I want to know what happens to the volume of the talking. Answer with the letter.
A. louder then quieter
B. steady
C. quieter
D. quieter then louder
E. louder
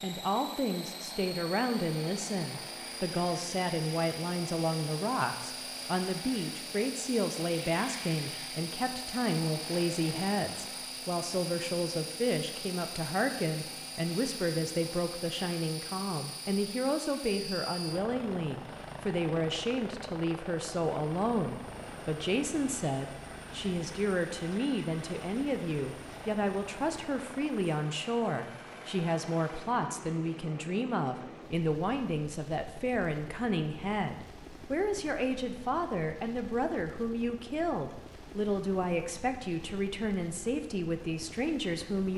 B.